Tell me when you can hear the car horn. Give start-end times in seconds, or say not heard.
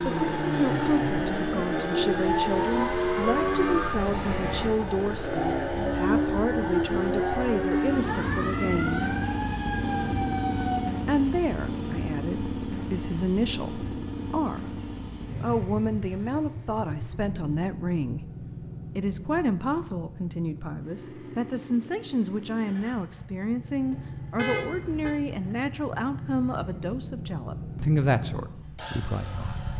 24.4-25.1.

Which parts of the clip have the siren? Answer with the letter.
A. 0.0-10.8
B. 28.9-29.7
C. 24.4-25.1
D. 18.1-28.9
A.